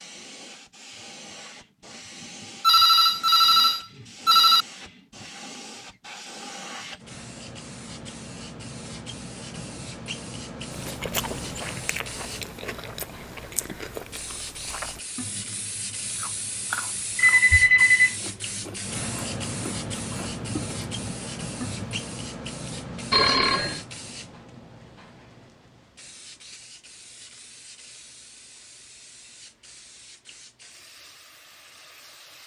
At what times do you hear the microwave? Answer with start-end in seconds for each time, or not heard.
not heard.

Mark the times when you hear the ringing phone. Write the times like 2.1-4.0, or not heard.
2.6-4.7, 17.1-18.1, 23.1-23.8.